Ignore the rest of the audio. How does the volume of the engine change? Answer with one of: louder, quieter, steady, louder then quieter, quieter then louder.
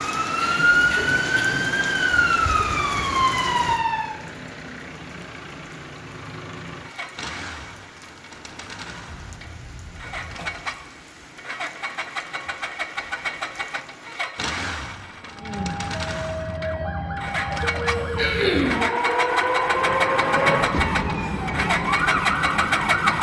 louder.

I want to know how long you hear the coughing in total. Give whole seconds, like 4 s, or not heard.
4 s.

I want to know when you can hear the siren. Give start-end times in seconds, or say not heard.
0.0-4.2, 15.3-23.1.